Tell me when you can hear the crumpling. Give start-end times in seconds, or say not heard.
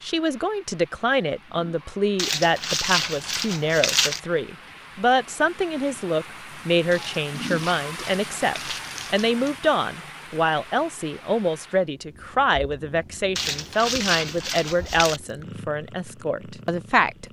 2.1-4.2, 6.9-9.6, 13.3-15.2.